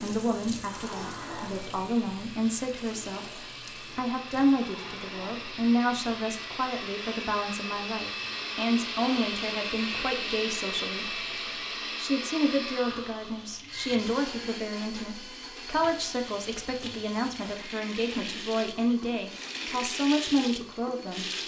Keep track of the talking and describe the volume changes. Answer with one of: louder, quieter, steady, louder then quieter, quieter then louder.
steady.